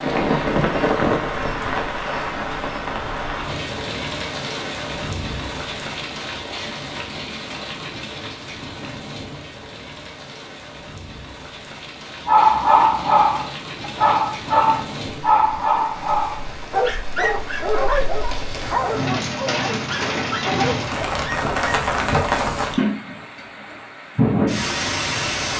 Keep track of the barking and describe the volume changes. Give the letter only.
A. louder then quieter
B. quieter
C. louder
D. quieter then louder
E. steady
B.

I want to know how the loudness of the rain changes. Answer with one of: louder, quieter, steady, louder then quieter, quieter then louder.
quieter then louder.